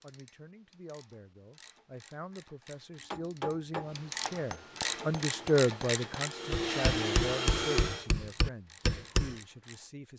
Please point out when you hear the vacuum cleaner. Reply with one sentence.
The vacuum cleaner can be heard from 4.8 to 8.1 s.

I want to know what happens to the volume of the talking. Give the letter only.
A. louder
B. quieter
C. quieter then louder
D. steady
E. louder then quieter
E.